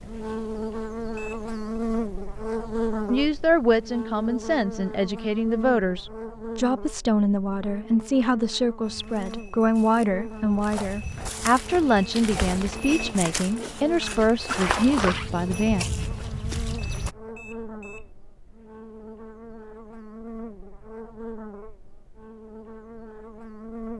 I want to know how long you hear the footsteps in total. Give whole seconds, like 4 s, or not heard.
8 s.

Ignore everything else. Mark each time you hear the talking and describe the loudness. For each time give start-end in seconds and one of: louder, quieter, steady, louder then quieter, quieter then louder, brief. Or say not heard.
3.0-15.8 steady.